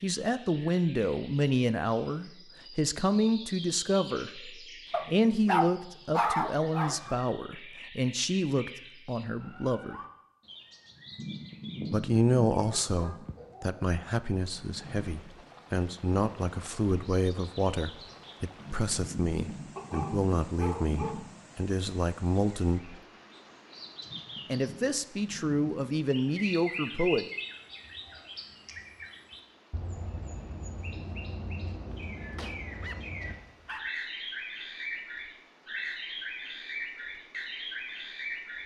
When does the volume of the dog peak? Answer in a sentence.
The loudest moment of the dog is at 6 seconds.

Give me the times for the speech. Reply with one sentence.
The speech can be heard from 0.0 to 9.9 s, from 11.9 to 22.9 s and from 24.5 to 27.2 s.